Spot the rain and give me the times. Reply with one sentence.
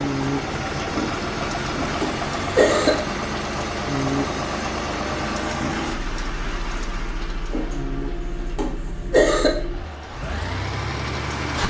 The rain can be heard from 0.0 to 11.6 s.